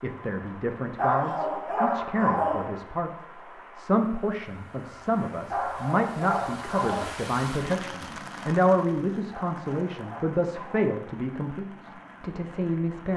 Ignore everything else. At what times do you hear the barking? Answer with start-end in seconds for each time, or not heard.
0.9-2.8, 5.5-7.2, 9.3-10.9.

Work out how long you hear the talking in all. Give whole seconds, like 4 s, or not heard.
13 s.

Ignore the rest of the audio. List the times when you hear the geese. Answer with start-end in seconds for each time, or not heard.
not heard.